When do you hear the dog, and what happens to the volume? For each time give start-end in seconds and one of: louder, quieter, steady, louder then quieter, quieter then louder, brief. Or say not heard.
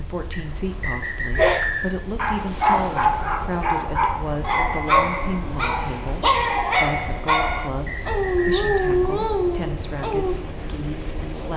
1.4-10.3 steady.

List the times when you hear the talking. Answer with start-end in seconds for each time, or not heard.
0.0-11.5.